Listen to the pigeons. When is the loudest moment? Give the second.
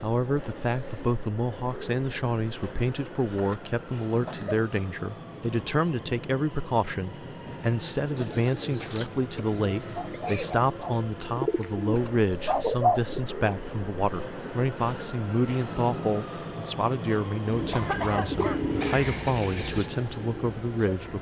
13 s.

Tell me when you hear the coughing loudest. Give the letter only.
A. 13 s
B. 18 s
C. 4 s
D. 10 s
B.